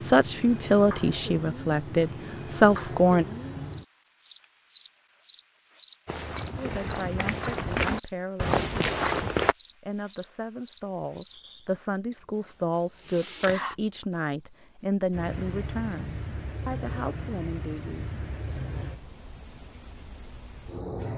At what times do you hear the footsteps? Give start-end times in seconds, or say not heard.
6.0-9.6.